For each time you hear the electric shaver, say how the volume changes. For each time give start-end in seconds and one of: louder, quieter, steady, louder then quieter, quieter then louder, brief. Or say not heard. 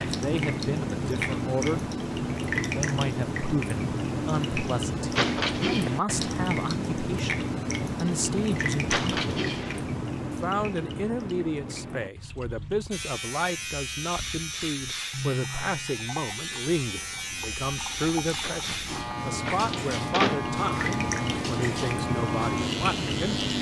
12.9-23.5 steady.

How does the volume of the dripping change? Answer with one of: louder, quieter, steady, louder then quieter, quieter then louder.
quieter then louder.